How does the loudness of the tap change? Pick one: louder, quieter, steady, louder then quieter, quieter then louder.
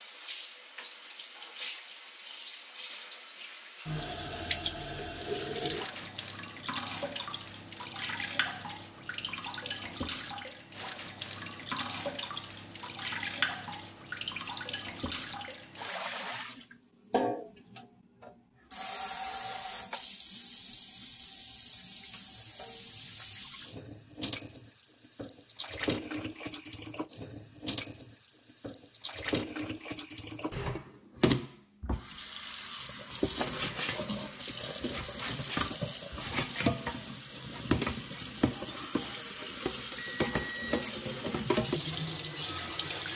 steady.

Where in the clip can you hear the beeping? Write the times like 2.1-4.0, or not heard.
40.0-40.9.